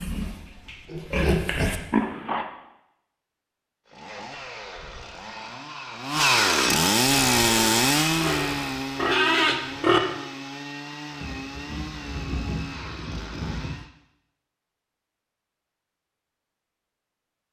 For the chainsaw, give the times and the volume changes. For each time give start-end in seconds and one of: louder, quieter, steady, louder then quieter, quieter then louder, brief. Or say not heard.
3.9-13.9 louder then quieter.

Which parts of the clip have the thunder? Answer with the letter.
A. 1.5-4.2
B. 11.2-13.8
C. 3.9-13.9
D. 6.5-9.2
B.